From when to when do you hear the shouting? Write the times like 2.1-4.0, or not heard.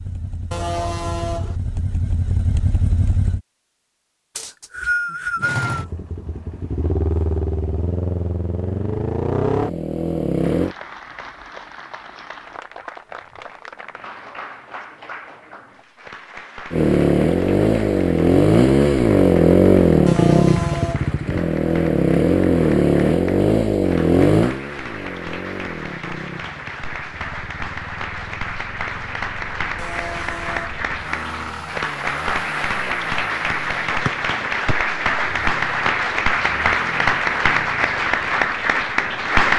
not heard.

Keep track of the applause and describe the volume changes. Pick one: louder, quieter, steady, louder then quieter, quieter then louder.
louder.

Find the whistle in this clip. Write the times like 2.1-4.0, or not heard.
4.3-5.7, 34.0-34.8.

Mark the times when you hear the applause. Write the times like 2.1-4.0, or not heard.
10.3-39.5.